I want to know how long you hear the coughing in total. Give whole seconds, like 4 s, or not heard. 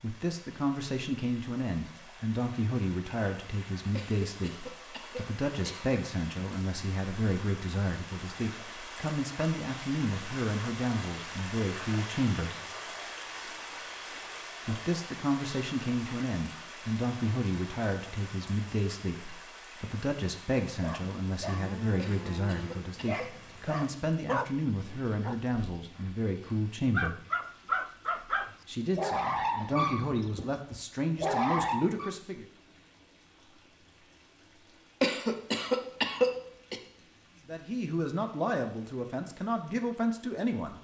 5 s.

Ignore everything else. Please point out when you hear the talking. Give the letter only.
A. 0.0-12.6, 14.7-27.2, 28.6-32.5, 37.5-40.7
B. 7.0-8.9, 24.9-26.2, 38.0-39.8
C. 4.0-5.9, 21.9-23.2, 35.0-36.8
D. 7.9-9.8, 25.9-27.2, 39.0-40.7
A.